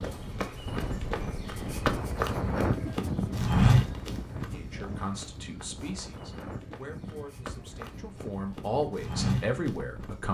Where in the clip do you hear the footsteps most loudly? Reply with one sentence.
The loudest moment of the footsteps is at 4 seconds.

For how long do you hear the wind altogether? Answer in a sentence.
The wind can be heard for 10 seconds in total.